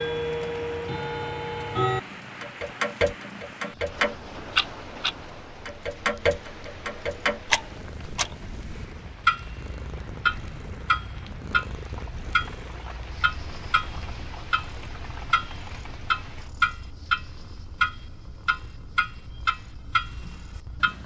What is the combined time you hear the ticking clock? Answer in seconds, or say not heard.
21 s.